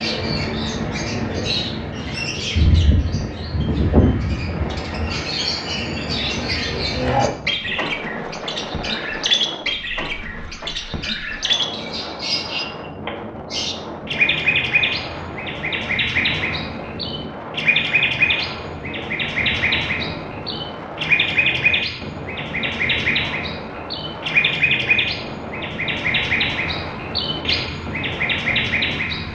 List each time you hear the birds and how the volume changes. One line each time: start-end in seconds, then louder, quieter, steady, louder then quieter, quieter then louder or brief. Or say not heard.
0.0-29.3 steady.